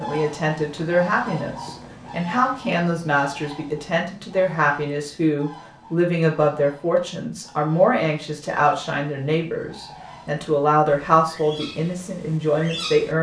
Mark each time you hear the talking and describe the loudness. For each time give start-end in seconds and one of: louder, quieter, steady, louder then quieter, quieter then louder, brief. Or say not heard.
0.0-13.1 steady.